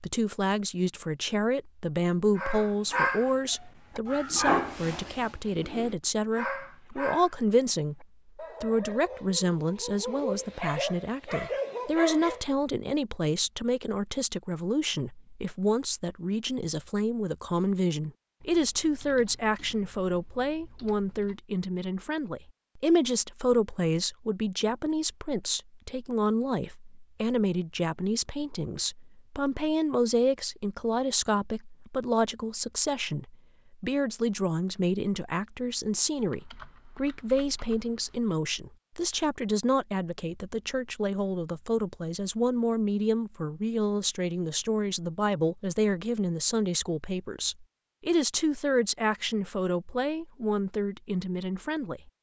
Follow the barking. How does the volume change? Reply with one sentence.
The volume of the barking goes down, then up.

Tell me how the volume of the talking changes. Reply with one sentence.
The volume of the talking stays about the same.